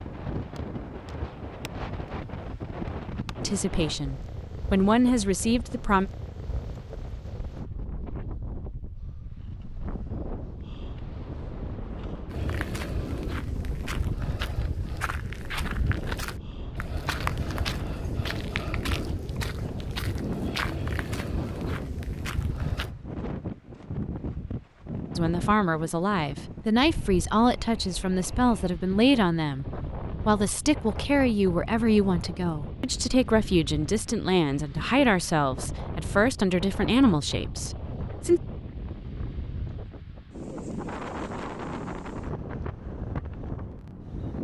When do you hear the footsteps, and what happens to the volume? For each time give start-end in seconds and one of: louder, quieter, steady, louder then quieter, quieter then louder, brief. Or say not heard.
12.3-22.9 steady.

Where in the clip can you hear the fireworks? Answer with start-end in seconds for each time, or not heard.
not heard.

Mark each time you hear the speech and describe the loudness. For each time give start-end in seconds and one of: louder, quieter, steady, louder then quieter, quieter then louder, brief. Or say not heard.
3.4-6.1 brief
25.1-38.4 steady.